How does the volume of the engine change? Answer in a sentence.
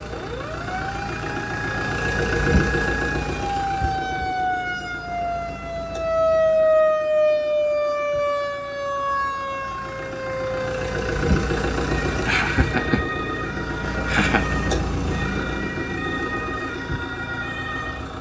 The volume of the engine goes down, then up.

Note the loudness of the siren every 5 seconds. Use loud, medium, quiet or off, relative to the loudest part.
medium, loud, medium, medium.